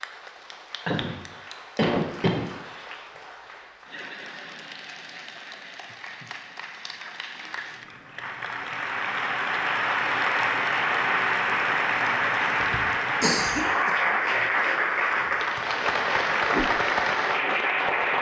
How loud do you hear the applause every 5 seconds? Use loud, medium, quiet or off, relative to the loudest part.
quiet, medium, loud, loud.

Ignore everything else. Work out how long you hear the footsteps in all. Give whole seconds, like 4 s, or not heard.
not heard.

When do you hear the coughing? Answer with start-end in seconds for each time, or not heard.
0.8-2.9, 12.6-13.9.